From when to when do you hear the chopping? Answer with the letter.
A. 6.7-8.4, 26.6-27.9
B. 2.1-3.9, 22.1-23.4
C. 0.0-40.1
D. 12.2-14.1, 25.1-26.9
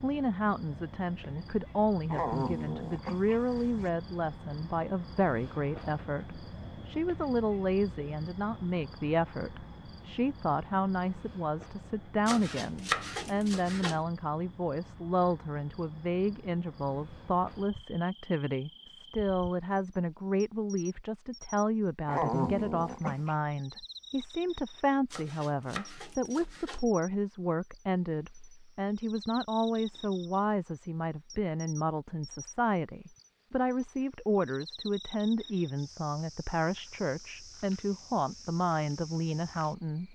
D.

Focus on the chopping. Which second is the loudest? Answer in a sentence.
The volume of the chopping peaks at 13 seconds.